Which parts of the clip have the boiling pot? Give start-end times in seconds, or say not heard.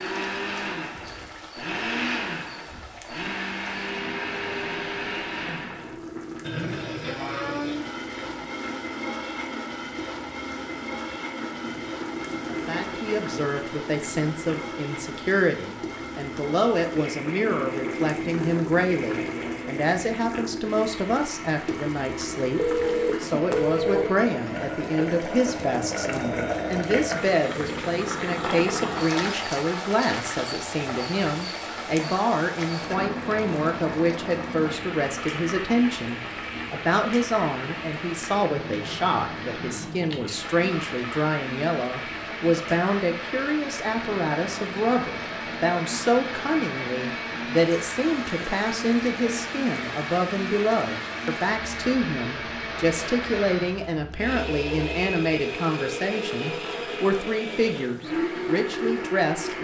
0.0-59.5.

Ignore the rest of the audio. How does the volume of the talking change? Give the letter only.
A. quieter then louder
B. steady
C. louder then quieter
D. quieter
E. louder
B.